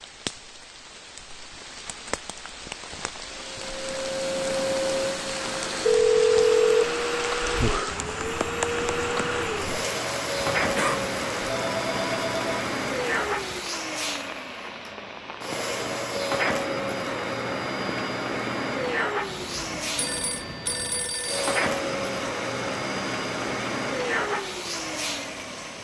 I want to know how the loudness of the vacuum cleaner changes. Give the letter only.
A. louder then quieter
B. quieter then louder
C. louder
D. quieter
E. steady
E.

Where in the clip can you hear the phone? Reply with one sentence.
You can hear the phone from 5.8 to 6.8 s, from 10.8 to 12.7 s and from 19.9 to 21.4 s.